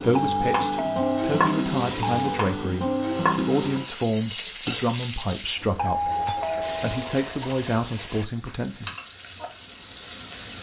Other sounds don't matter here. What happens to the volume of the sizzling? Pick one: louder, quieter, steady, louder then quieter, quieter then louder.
quieter.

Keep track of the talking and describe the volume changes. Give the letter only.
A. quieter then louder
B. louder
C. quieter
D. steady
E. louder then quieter
D.